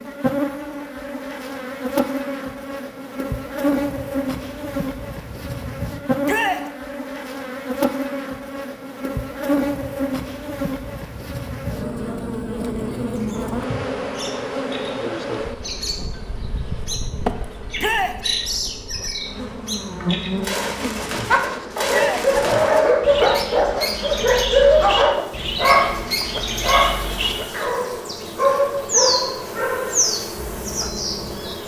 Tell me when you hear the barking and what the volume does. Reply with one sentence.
The barking can be heard from 21.3 to 31.4 s, getting quieter.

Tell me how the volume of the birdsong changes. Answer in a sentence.
The volume of the birdsong goes up.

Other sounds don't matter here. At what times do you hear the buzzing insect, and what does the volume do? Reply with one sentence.
You can hear the buzzing insect from 0.0 to 31.6 s, getting quieter.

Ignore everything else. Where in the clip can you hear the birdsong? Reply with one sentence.
The birdsong can be heard from 13.2 to 31.6 s.